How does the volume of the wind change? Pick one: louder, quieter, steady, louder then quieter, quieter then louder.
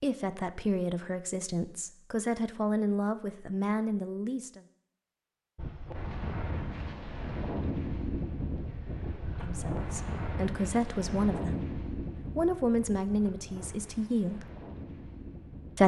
quieter.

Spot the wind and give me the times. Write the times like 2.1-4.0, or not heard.
5.5-15.8.